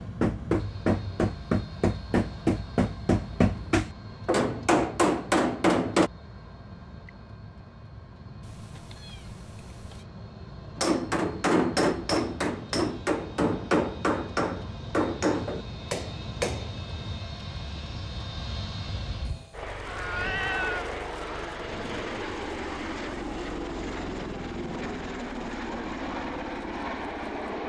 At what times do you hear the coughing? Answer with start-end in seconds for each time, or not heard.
not heard.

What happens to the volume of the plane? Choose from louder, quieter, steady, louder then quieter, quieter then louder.
louder.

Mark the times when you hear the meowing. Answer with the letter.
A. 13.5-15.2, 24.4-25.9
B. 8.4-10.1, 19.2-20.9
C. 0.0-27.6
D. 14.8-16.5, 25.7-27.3
B.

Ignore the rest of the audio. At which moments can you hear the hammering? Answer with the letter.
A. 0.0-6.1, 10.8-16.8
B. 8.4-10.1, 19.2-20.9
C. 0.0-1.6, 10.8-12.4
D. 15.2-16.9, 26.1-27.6
A.